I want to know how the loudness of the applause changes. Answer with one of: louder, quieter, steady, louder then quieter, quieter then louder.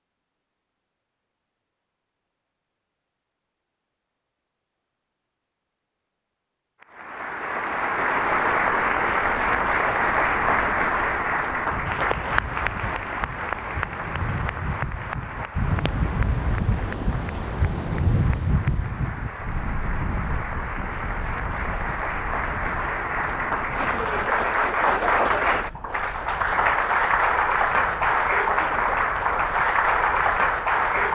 quieter then louder.